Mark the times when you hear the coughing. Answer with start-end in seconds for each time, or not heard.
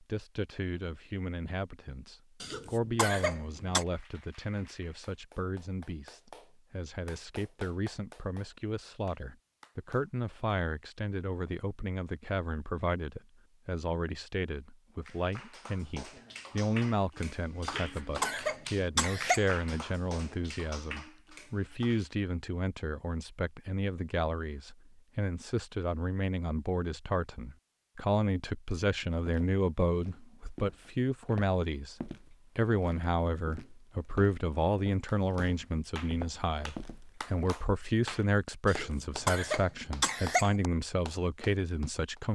2.4-3.9, 17.6-19.5, 38.6-40.5.